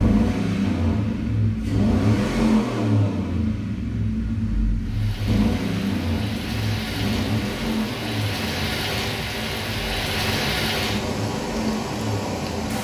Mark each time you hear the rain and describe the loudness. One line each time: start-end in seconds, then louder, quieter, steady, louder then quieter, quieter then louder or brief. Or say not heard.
4.8-12.7 louder.